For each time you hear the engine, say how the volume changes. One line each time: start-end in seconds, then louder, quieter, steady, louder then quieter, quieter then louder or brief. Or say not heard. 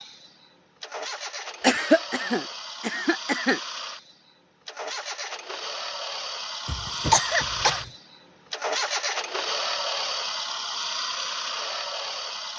0.0-12.5 louder.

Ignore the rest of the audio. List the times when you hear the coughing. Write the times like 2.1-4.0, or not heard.
1.6-3.6, 6.7-7.9.